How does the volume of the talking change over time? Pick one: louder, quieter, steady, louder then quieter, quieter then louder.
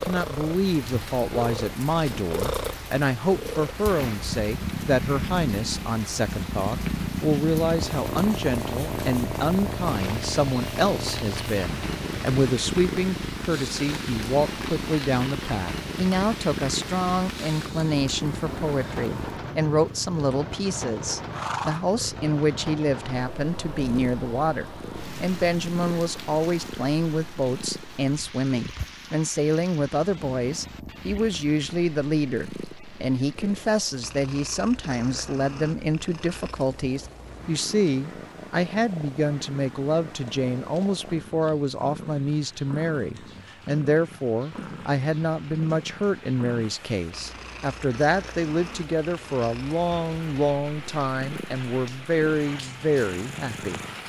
steady.